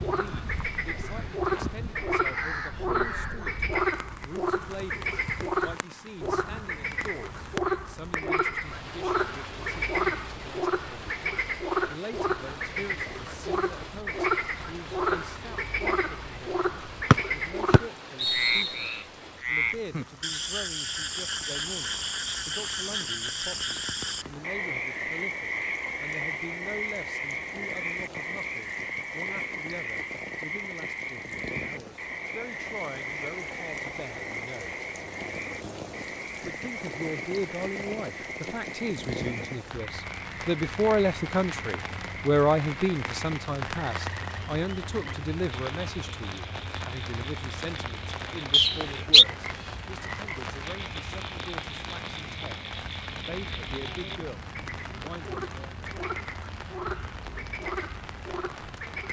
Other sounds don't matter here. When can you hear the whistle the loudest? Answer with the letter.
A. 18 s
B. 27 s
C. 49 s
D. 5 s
C.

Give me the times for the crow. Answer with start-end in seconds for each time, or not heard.
0.0-3.8.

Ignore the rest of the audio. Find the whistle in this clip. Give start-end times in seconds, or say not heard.
17.1-18.9, 48.5-49.2.